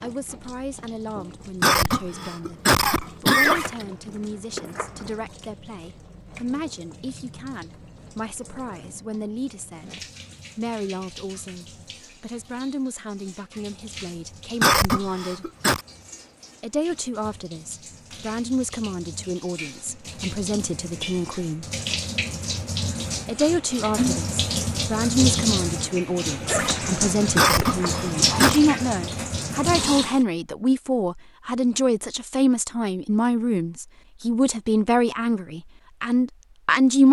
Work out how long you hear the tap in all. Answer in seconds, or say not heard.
30 s.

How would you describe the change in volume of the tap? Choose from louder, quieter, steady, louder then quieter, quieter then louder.
louder.